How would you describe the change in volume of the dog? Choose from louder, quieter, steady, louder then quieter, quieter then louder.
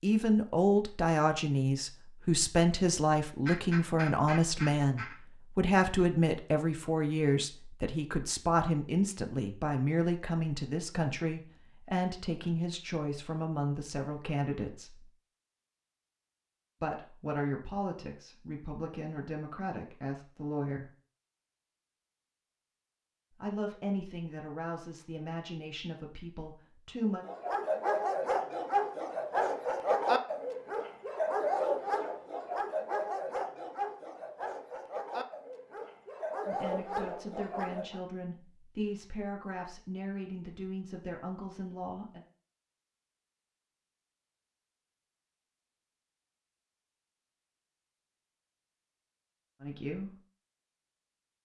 quieter.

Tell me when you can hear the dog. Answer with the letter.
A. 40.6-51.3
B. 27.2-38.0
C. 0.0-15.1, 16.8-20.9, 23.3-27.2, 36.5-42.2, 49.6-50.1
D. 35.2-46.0
B.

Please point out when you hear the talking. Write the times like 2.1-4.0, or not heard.
0.0-15.1, 16.8-20.9, 23.3-27.2, 36.5-42.2, 49.6-50.1.